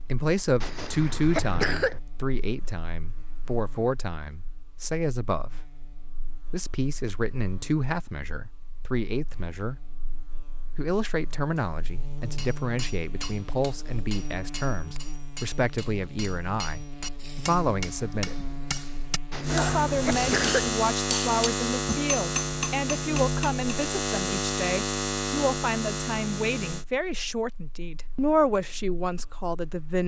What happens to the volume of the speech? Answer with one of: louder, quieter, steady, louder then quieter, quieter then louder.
steady.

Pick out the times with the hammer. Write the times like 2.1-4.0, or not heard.
12.3-23.6.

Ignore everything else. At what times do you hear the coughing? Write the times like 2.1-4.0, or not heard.
0.6-2.0, 19.3-20.7.